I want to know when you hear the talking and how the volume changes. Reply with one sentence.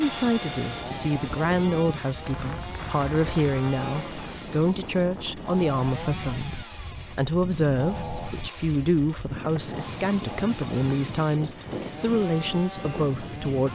The talking can be heard from 0.0 to 13.7 s, at a steady volume.